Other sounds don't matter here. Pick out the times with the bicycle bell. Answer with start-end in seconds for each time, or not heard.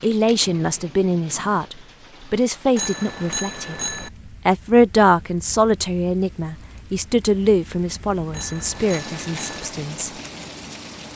2.8-4.1, 8.3-9.7.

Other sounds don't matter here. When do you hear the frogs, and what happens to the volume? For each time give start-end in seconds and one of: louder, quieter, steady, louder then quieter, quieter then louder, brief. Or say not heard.
not heard.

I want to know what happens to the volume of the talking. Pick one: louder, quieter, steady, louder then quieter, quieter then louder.
quieter.